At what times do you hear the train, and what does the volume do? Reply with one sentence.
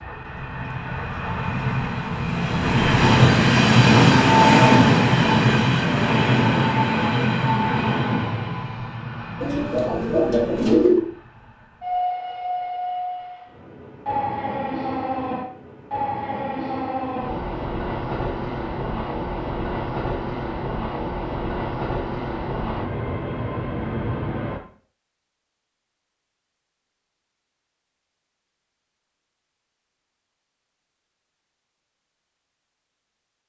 The train can be heard from 0.0 to 24.6 s, getting quieter.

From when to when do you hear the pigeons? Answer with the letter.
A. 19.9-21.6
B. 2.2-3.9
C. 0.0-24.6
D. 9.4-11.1
D.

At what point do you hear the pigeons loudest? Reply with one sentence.
The volume of the pigeons peaks at 11 seconds.